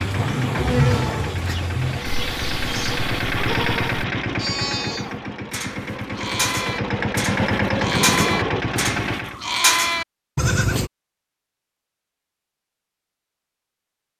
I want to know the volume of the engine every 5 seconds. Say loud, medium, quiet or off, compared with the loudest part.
loud, loud, off.